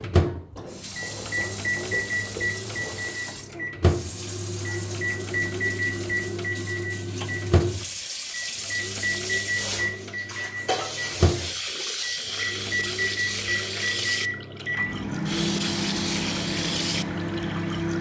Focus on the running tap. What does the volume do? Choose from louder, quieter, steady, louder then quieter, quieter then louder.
louder.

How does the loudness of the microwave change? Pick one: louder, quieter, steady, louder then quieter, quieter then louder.
steady.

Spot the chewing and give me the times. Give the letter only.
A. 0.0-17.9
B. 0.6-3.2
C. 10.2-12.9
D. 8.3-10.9
B.